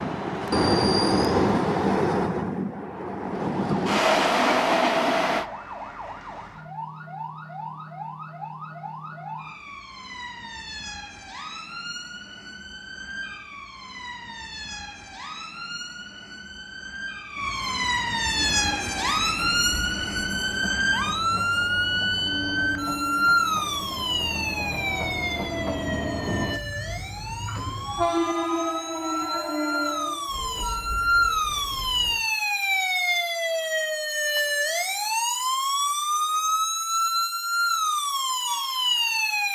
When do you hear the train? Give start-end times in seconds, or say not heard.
0.0-5.5, 18.3-32.2.